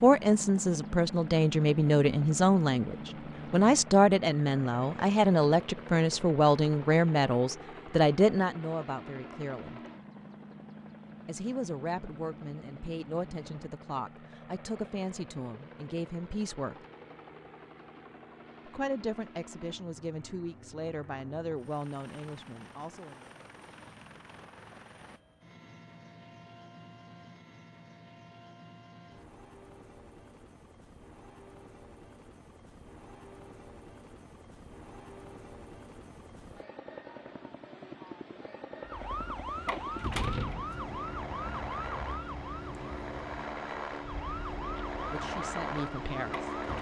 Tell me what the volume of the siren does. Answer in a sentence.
The loudness of the siren goes down.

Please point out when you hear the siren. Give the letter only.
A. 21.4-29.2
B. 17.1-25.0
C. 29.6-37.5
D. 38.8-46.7
D.